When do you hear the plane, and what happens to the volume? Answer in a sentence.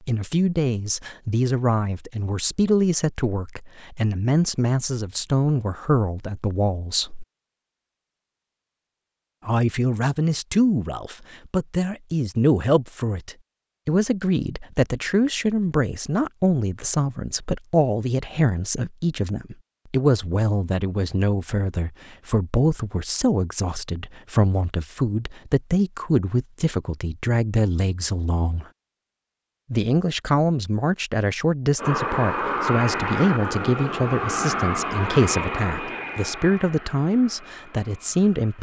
The plane can be heard from 31.8 to 38.5 s, getting quieter.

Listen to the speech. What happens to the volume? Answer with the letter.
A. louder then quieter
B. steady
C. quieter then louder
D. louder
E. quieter
B.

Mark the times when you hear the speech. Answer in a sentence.
The speech can be heard from 0.1 to 7.2 s, from 9.4 to 28.6 s and from 29.7 to 38.5 s.